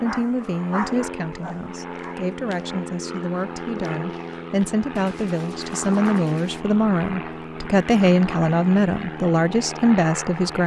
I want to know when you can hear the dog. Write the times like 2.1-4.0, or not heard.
0.0-2.1.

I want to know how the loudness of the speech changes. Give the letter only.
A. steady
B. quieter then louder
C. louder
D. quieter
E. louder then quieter
C.